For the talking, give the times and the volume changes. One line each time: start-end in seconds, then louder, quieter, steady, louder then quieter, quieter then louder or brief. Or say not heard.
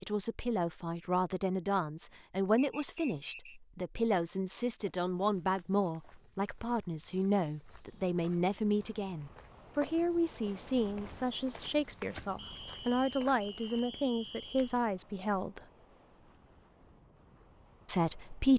0.0-15.6 steady
17.9-18.5 brief.